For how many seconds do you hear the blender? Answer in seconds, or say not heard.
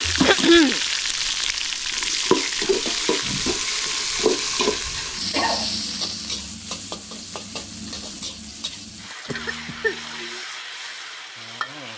not heard.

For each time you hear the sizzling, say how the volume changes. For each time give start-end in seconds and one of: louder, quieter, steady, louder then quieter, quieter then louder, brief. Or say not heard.
0.0-11.9 quieter.